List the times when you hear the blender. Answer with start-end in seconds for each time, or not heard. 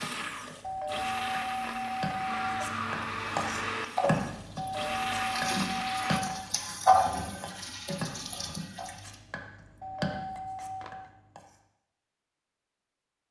0.0-6.2.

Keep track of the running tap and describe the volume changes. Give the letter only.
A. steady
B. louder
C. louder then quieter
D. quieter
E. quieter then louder
C.